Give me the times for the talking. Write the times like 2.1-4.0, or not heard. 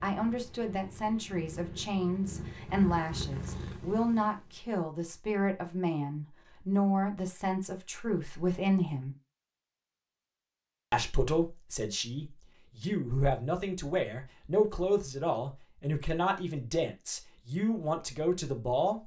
0.0-9.2, 10.9-19.0.